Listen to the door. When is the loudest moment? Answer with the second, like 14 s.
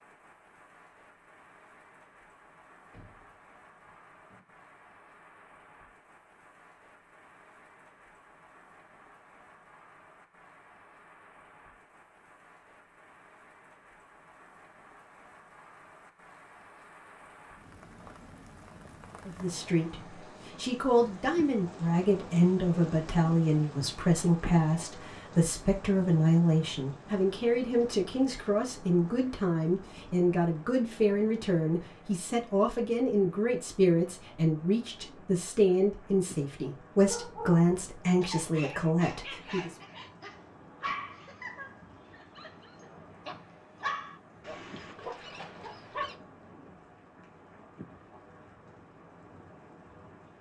3 s.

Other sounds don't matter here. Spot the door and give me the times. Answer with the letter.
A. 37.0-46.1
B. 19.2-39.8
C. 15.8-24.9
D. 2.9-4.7
D.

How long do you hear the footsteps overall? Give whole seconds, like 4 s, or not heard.
not heard.